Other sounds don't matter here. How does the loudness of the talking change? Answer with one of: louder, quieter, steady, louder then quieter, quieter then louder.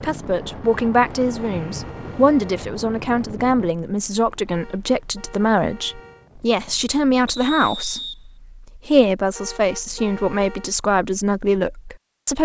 steady.